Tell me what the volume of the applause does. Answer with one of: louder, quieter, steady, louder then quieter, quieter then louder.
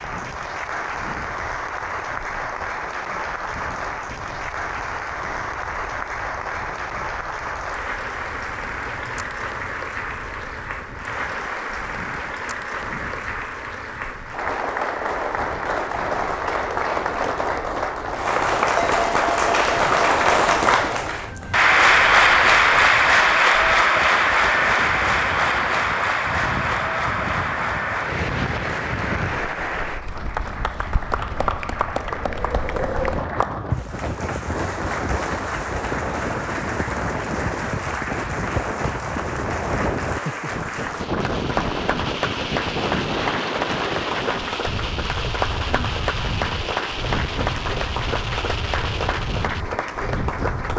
louder then quieter.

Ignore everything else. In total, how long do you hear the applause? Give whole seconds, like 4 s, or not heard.
51 s.